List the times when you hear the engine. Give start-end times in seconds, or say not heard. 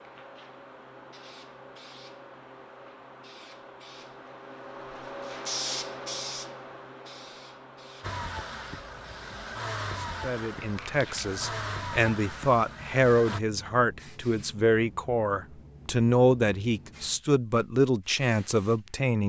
8.0-13.4.